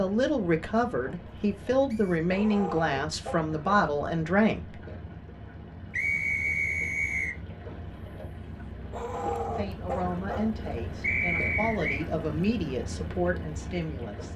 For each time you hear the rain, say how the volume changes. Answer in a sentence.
The rain can't be heard in this clip.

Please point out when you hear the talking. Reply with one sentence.
The talking can be heard from 0.0 to 4.8 s and from 9.6 to 14.3 s.